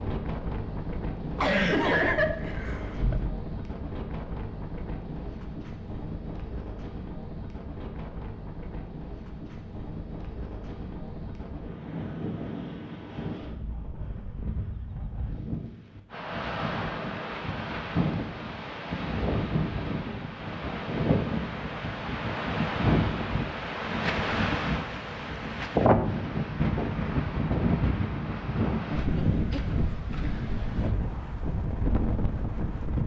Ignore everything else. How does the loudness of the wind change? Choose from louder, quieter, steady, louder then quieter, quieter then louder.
louder.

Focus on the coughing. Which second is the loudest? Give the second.
2 s.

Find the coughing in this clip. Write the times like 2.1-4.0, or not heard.
1.4-3.3, 28.9-29.6.